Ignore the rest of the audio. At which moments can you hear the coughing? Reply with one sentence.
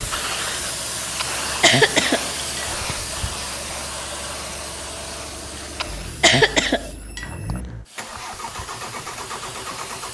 The coughing can be heard from 1.1 to 3.0 s and from 5.8 to 7.6 s.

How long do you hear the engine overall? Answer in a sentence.
The engine can be heard for 10 seconds in total.